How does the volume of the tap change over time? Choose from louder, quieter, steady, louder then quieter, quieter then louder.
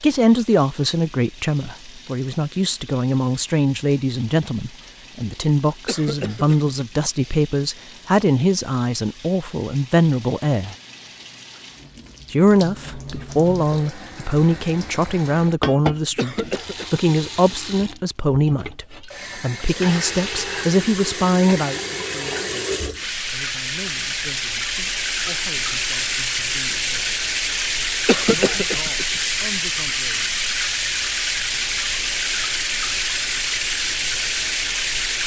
louder.